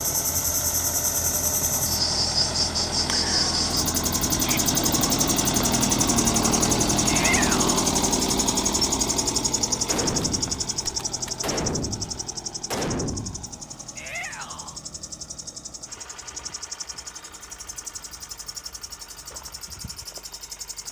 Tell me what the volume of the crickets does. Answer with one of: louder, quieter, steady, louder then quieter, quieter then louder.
quieter.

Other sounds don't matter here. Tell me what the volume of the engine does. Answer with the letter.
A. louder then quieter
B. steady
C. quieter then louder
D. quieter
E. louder
A.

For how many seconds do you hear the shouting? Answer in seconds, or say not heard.
2 s.